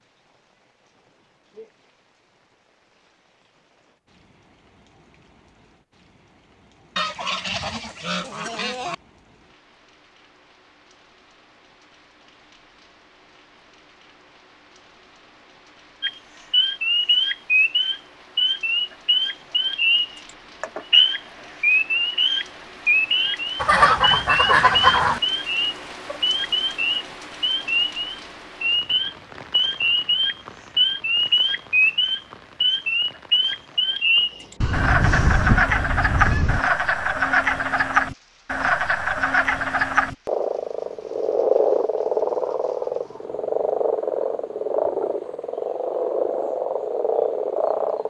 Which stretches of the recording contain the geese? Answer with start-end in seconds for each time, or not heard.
7.0-8.9, 23.6-25.2, 34.6-36.6.